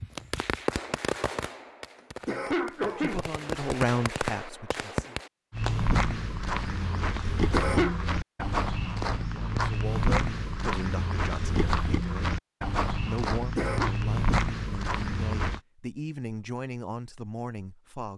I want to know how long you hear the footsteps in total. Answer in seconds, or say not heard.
10 s.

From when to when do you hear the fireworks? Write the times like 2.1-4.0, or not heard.
0.0-5.8.